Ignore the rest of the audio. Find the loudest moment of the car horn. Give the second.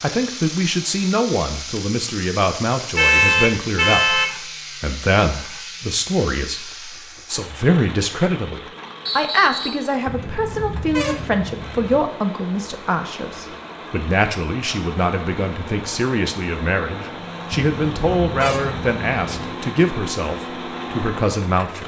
3 s.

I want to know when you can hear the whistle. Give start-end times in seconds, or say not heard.
9.1-9.9.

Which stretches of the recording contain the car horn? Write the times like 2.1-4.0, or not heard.
3.0-4.4, 10.1-12.1, 17.5-19.5.